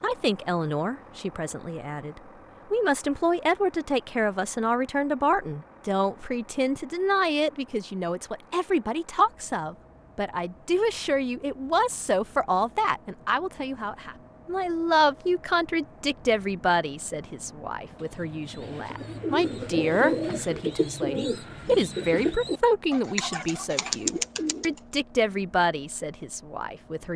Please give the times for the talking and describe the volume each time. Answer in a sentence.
You can hear the talking from 0.0 to 27.1 s, at a steady volume.